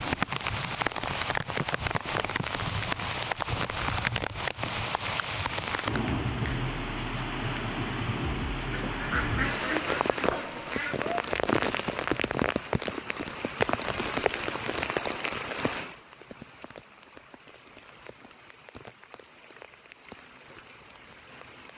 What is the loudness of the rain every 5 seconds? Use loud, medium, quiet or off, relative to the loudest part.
loud, loud, loud, medium, quiet.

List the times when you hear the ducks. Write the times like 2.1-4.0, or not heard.
8.7-11.1.